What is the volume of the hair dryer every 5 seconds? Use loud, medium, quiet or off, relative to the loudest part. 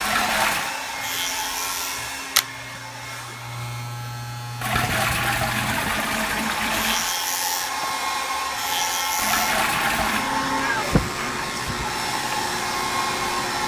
medium, loud, loud.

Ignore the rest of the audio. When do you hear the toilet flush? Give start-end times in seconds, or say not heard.
0.0-0.8, 4.6-7.2, 9.2-10.3.